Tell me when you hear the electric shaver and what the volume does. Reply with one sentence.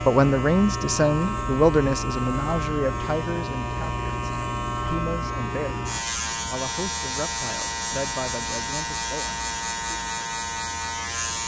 You can hear the electric shaver from 0.0 to 11.4 s, at a steady volume.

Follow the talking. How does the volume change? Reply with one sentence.
The loudness of the talking goes down.